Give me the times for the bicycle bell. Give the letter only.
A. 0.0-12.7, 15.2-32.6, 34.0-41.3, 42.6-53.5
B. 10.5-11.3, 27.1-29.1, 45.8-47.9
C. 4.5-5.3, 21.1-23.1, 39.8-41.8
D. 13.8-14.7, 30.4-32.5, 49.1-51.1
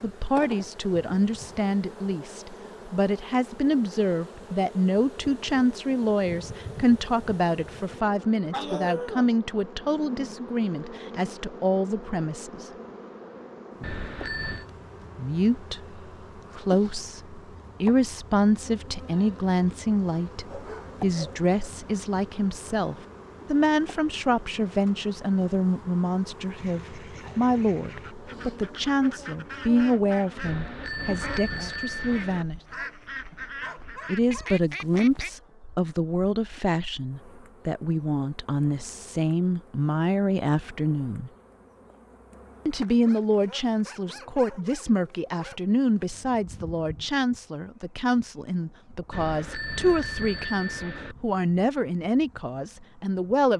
D.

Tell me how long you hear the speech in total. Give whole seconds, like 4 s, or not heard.
48 s.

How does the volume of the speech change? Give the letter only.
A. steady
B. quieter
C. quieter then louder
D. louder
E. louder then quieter
A.